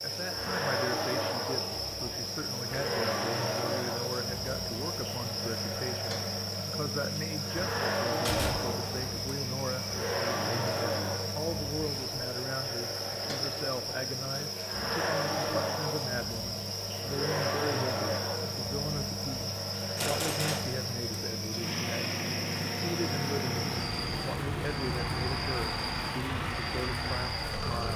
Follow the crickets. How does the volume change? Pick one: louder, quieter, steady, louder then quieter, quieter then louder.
steady.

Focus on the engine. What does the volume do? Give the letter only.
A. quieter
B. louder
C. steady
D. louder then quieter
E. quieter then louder
C.